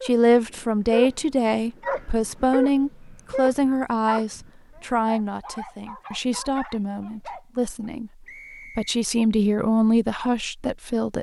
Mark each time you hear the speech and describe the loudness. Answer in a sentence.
You can hear the speech from 0.0 to 11.1 s, getting quieter then louder.